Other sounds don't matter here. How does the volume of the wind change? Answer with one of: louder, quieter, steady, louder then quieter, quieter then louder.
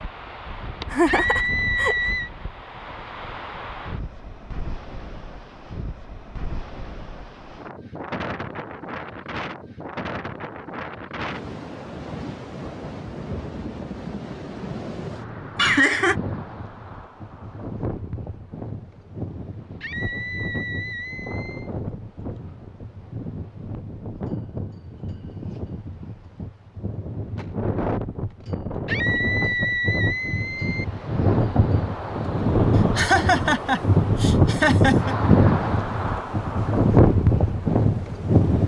louder.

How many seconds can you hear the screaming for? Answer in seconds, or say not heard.
5 s.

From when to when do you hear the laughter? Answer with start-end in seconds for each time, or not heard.
0.9-1.9, 15.6-16.1, 33.0-35.1.